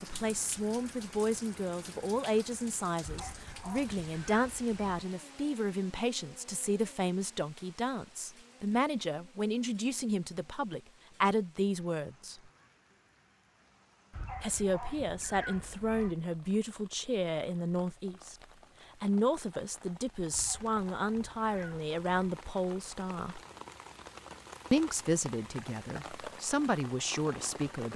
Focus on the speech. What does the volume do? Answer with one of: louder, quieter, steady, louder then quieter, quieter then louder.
steady.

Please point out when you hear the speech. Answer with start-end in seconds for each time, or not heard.
0.0-12.4, 14.4-18.4, 19.0-23.4, 24.7-27.9.